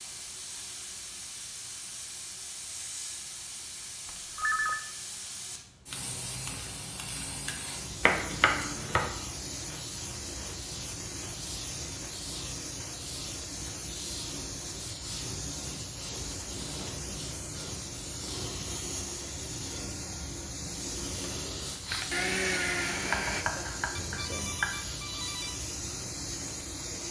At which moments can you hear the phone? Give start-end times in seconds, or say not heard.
4.0-4.8, 23.9-25.6.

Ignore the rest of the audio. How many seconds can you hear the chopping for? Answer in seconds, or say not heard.
3 s.